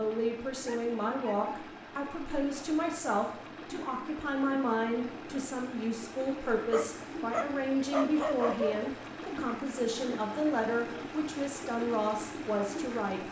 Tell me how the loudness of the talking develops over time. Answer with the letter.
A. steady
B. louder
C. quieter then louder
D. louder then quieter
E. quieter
A.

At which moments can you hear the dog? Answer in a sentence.
You can hear the dog from 0.7 to 1.6 s and from 6.7 to 8.9 s.